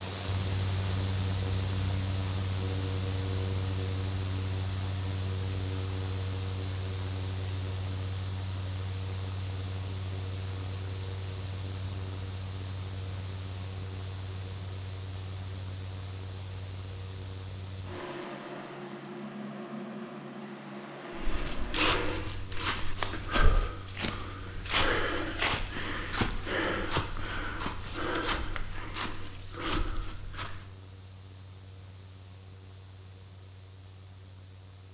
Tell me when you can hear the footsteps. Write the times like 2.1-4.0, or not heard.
21.1-30.6.